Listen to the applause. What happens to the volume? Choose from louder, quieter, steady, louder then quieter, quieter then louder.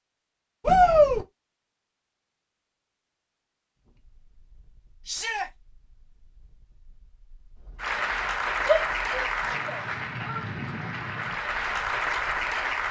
quieter then louder.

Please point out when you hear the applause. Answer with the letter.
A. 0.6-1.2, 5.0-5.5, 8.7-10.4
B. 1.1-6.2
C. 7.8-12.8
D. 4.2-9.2
C.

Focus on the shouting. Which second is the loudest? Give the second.
1 s.